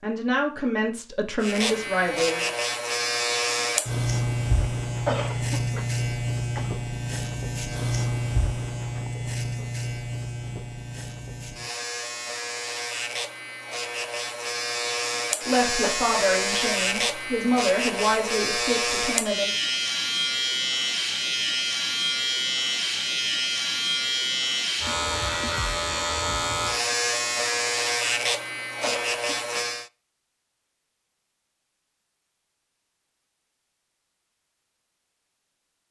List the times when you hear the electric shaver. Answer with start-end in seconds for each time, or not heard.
1.4-29.9.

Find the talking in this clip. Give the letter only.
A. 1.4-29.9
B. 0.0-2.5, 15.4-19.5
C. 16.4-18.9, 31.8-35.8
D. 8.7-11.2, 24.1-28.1
B.